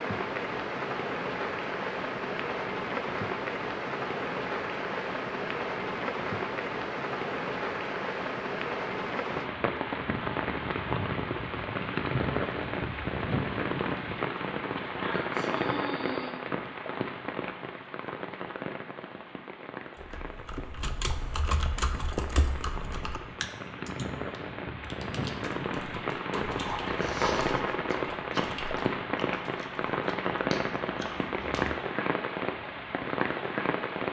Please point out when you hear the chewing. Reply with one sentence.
The chewing can be heard from 26.3 to 31.8 s.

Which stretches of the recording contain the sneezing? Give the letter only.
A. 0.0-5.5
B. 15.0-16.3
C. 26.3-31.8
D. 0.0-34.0
B.